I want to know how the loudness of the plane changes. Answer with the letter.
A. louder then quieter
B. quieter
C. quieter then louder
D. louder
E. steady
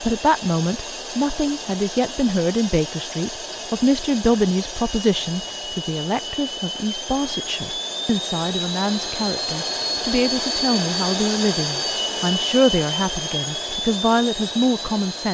D.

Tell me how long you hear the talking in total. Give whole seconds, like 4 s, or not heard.
15 s.